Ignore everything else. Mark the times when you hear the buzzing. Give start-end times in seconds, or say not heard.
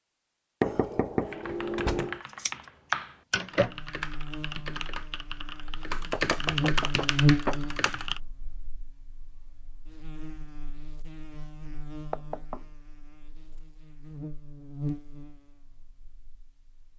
3.6-16.8.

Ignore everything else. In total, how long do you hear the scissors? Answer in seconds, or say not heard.
2 s.